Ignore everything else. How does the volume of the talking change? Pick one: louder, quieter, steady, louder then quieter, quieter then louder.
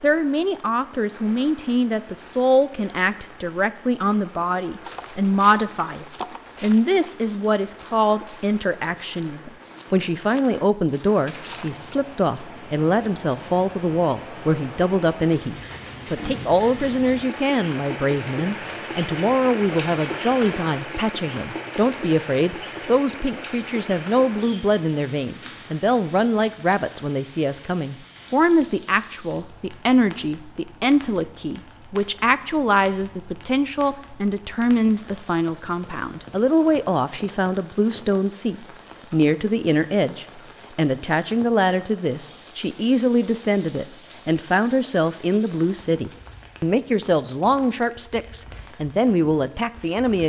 steady.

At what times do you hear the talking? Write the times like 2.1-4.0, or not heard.
0.0-50.2.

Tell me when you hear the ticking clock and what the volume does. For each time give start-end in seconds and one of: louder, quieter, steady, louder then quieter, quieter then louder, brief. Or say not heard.
not heard.